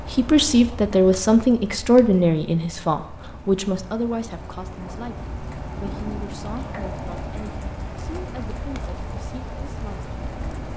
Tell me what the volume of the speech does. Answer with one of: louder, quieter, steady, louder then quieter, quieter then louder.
quieter.